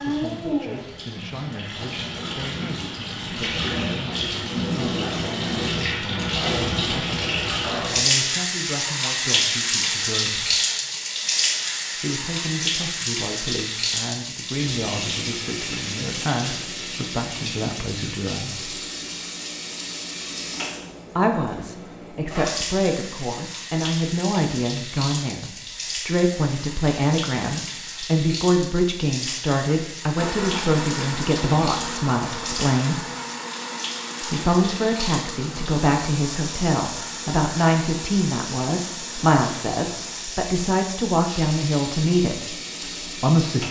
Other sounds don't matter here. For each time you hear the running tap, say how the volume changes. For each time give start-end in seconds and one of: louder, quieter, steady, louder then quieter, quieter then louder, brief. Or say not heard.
0.0-43.6 quieter.